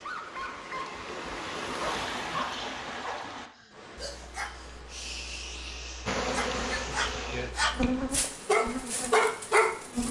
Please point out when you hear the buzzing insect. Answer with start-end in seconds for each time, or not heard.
6.0-10.0.